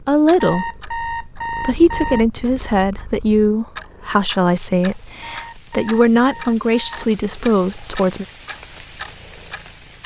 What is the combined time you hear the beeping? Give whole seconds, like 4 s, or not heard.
4 s.